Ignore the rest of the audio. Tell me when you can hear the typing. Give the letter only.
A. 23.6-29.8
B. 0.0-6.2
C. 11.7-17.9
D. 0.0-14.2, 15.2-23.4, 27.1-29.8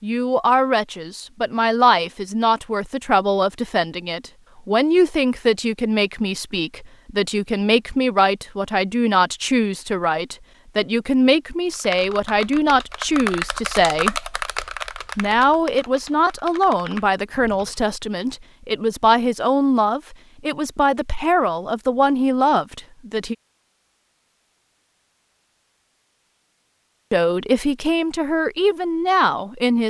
C.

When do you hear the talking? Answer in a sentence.
You can hear the talking from 0.0 to 14.2 s, from 15.2 to 23.4 s and from 27.1 to 29.8 s.